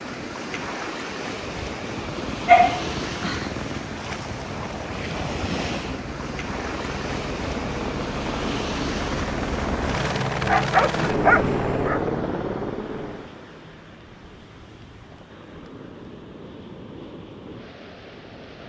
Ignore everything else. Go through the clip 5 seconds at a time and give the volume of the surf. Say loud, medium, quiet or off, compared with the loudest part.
loud, loud, medium, medium.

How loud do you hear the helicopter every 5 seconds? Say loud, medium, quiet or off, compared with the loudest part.
medium, medium, loud, off.